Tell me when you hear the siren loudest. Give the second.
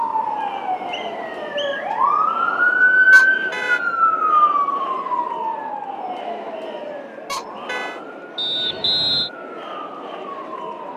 3 s.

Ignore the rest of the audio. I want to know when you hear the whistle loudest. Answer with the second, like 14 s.
9 s.